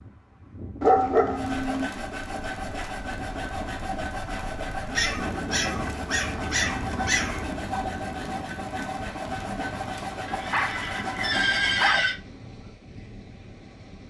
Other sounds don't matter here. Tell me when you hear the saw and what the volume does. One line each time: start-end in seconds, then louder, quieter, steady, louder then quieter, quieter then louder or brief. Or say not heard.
1.4-12.0 steady.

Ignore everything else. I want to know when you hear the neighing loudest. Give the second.
12 s.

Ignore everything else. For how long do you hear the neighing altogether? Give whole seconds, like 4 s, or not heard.
2 s.